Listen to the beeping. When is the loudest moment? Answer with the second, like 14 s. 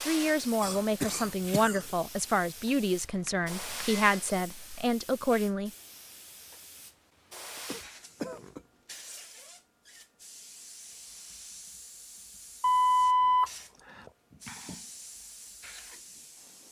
13 s.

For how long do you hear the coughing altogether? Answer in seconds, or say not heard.
4 s.